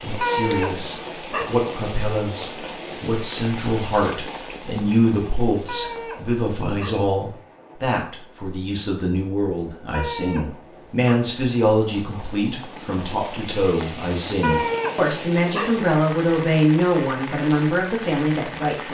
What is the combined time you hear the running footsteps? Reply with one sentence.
The running footsteps can't be heard in this clip.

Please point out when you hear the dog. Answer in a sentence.
The dog can be heard from 0.2 to 1.6 s, from 5.7 to 7.1 s, from 9.9 to 11.3 s and from 14.4 to 15.8 s.